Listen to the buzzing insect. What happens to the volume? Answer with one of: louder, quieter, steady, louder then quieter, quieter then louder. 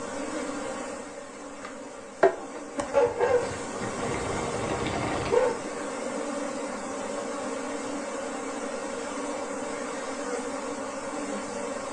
steady.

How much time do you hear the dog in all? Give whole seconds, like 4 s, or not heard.
3 s.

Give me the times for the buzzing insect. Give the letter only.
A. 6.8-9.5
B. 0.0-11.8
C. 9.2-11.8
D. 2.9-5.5
B.